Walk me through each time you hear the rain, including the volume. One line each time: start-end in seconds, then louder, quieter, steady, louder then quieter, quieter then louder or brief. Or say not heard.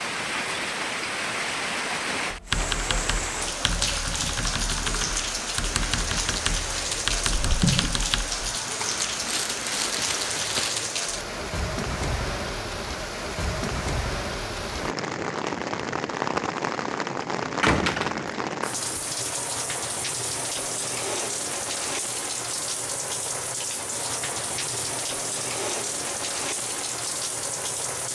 0.0-28.1 steady.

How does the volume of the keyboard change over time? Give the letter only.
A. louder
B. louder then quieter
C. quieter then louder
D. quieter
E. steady
E.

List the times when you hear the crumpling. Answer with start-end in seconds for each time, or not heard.
9.1-10.8.